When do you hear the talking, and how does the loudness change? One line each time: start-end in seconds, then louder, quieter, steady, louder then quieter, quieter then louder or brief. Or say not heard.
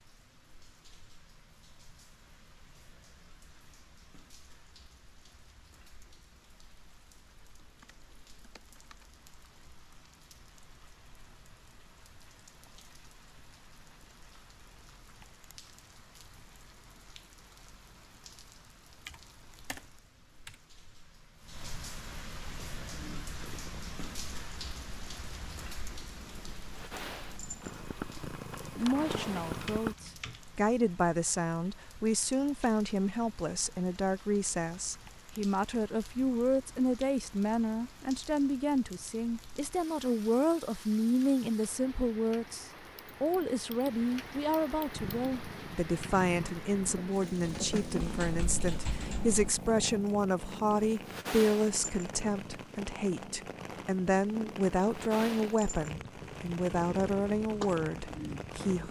28.8-58.8 steady.